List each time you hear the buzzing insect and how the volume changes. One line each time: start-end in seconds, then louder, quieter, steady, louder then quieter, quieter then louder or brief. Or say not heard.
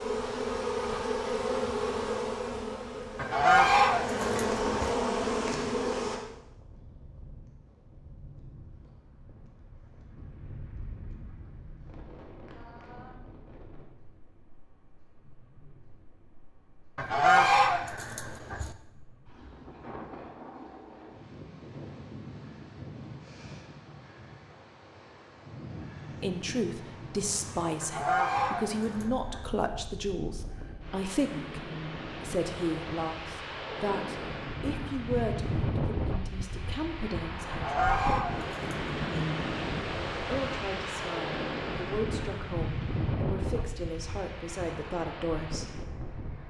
0.0-6.2 quieter then louder.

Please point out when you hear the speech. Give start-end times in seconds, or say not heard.
26.2-37.8, 40.2-45.8.